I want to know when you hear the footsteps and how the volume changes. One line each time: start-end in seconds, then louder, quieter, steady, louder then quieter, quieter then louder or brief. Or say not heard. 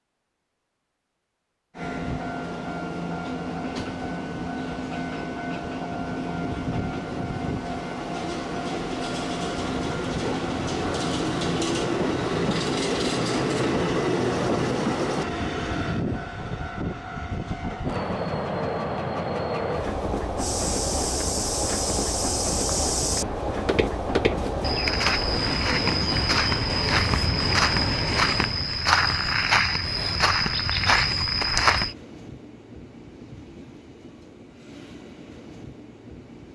20.4-31.9 louder.